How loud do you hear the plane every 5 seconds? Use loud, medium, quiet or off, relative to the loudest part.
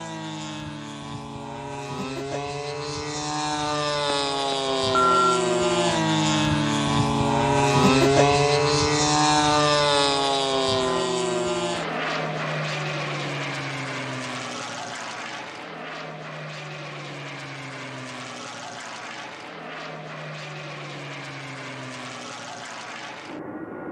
medium, loud, medium, quiet, quiet.